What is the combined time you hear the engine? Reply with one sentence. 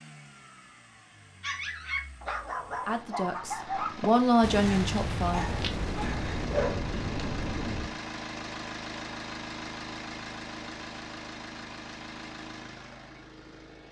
You can hear the engine for 14 seconds altogether.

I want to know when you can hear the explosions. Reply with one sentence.
The explosions can be heard from 4.4 to 8.0 s.